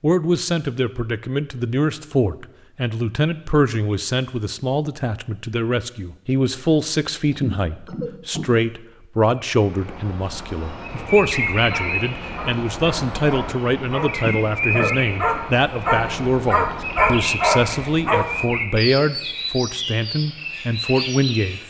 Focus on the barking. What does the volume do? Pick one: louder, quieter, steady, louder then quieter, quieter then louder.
louder.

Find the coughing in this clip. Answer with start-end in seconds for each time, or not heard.
7.3-8.5, 14.2-14.9.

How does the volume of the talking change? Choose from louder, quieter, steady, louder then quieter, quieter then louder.
steady.